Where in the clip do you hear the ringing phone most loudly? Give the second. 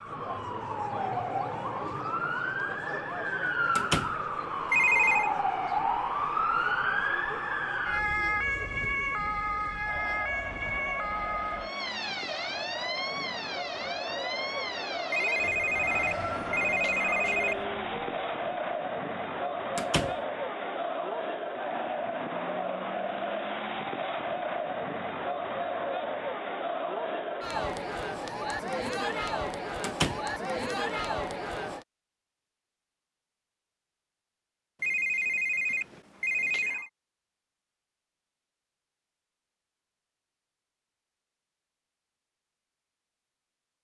5 s.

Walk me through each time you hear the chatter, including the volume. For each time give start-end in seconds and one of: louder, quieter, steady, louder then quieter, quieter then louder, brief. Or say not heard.
0.0-31.9 louder.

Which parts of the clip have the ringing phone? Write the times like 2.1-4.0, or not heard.
4.7-5.3, 15.1-17.6, 34.8-36.9.